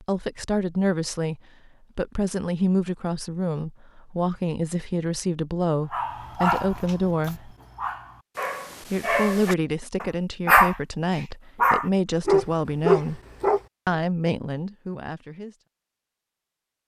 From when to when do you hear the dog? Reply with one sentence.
You can hear the dog from 5.9 to 13.6 s.